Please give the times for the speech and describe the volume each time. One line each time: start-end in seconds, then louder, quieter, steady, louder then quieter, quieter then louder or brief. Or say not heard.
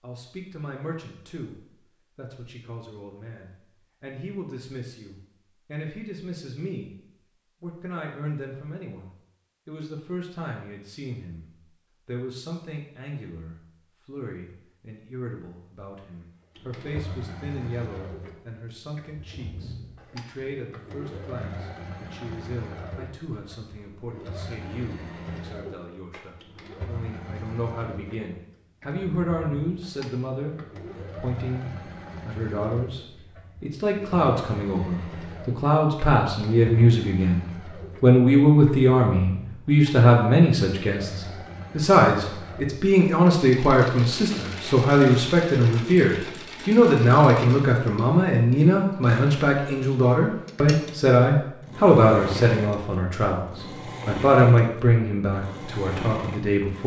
0.0-7.0 quieter then louder
7.6-56.8 louder.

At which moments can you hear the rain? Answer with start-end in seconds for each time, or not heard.
not heard.